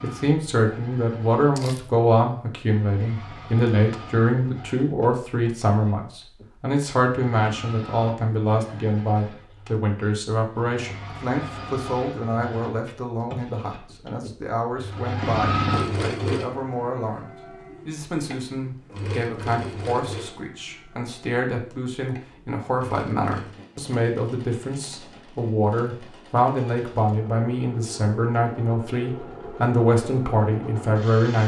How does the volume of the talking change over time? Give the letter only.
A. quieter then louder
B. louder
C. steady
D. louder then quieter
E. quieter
A.